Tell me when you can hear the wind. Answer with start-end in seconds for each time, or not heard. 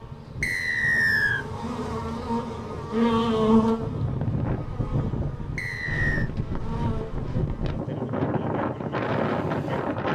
0.0-10.1.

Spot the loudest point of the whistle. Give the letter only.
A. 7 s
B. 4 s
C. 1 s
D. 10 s
C.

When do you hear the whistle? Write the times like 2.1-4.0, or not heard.
0.4-1.4, 5.5-6.3.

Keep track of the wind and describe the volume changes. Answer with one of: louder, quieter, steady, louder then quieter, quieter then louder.
louder.